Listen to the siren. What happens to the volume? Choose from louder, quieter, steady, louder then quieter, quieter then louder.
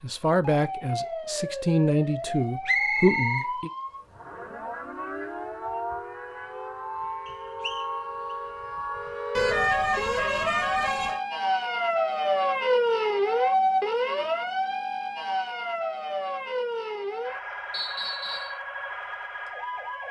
louder then quieter.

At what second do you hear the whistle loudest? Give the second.
3 s.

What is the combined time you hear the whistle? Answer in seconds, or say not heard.
2 s.